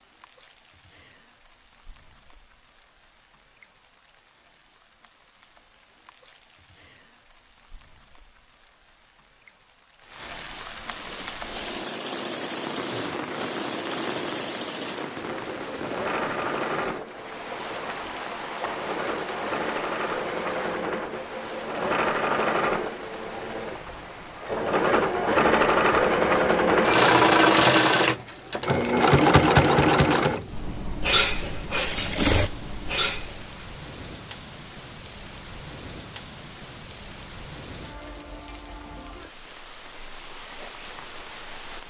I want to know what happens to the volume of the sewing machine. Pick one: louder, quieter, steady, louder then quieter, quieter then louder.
louder.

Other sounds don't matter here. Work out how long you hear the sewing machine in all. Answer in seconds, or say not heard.
23 s.